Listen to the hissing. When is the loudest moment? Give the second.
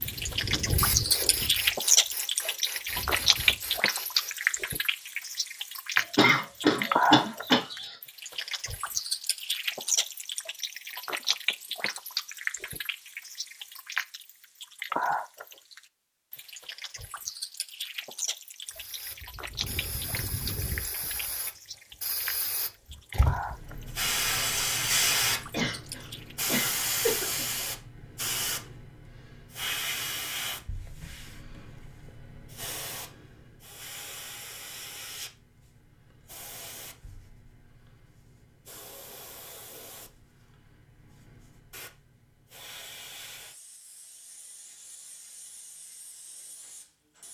25 s.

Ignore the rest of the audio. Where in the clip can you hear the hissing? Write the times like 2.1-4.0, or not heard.
0.0-4.6, 18.6-47.2.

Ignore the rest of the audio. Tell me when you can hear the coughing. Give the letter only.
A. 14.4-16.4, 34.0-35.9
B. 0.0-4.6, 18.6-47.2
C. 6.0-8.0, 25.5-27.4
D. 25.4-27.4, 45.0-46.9
C.